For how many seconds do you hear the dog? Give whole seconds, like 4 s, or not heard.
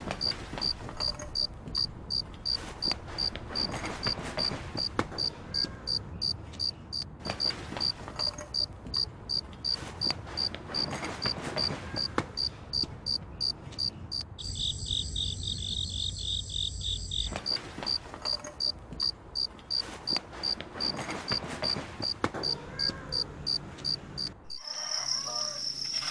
not heard.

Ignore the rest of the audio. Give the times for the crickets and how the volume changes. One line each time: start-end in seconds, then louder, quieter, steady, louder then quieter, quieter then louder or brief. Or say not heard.
0.0-26.0 steady.